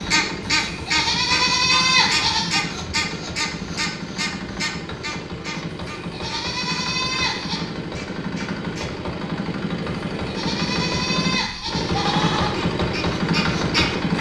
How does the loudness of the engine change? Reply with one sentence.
The volume of the engine goes up.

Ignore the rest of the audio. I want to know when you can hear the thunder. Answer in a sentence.
You can't hear the thunder here.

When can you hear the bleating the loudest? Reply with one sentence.
The volume of the bleating peaks at 2 seconds.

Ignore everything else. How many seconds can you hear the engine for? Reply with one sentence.
The engine can be heard for 14 seconds in total.